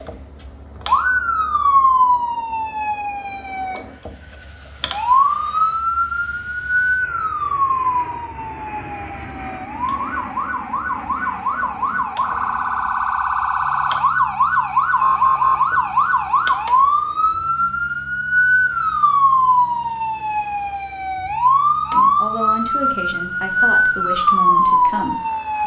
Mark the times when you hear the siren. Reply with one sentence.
You can hear the siren from 0.0 to 25.6 s.